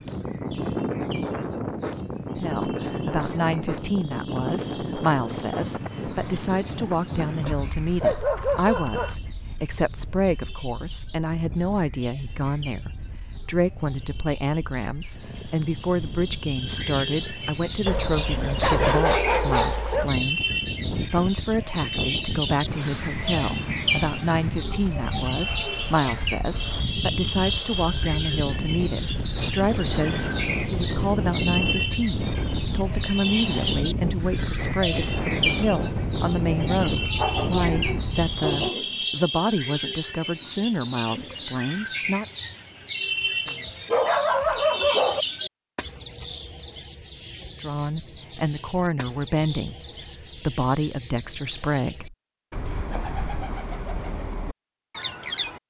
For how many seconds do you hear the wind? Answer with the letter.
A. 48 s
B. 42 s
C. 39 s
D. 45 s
C.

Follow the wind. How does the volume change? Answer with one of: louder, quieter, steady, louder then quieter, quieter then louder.
quieter then louder.